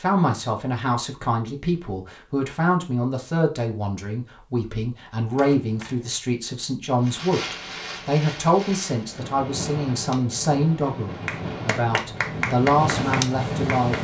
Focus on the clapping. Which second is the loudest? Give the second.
13 s.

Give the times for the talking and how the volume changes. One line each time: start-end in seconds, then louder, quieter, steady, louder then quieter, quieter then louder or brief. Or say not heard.
0.0-13.9 steady.